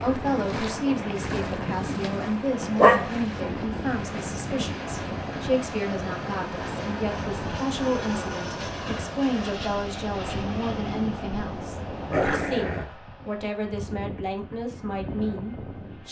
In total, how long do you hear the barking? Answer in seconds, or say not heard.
2 s.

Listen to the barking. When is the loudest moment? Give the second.
3 s.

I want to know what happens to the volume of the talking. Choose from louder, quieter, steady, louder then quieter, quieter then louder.
steady.